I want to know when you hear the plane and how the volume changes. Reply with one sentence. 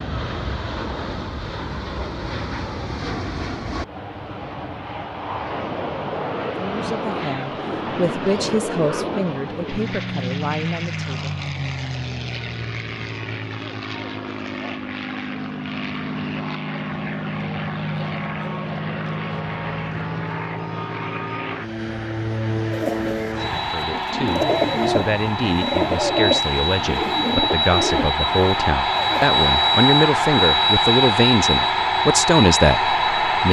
You can hear the plane from 0.0 to 33.4 s, getting louder.